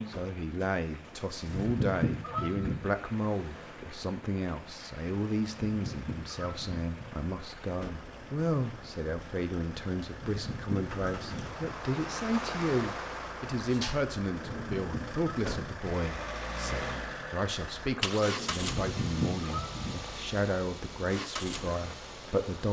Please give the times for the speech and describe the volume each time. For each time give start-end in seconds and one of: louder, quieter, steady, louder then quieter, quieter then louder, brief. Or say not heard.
0.1-22.6 steady.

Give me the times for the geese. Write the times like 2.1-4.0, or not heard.
1.4-2.8, 5.7-7.1, 10.2-11.8, 14.5-15.9, 18.7-19.9.